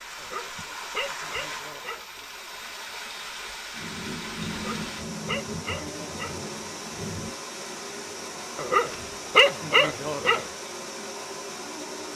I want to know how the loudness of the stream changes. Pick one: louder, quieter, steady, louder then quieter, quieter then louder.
steady.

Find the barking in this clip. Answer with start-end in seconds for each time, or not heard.
0.1-2.0, 4.5-6.4, 8.6-10.4.